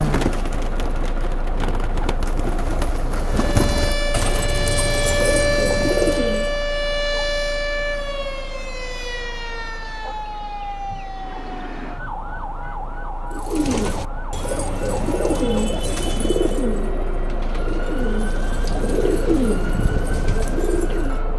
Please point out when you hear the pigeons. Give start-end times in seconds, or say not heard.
0.0-6.5, 13.3-21.2.